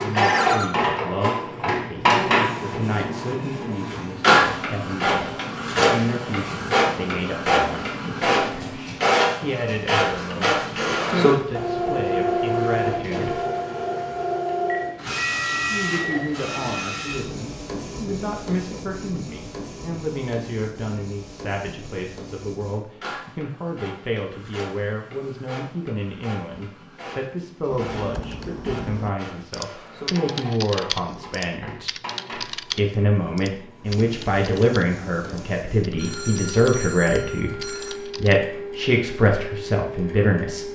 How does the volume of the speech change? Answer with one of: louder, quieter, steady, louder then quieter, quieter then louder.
louder.